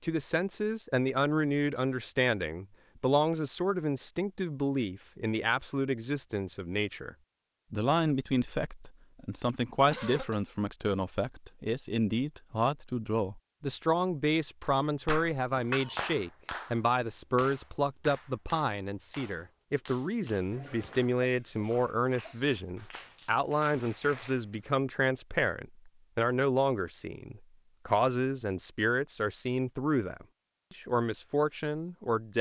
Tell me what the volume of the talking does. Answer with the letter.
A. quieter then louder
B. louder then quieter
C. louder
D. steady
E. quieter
D.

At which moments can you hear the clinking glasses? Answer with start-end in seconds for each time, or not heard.
15.5-16.1.